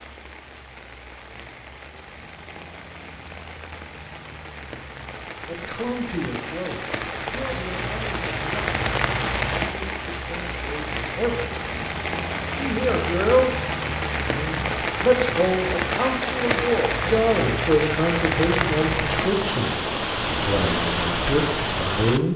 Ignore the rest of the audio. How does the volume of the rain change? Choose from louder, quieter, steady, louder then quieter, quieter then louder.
louder.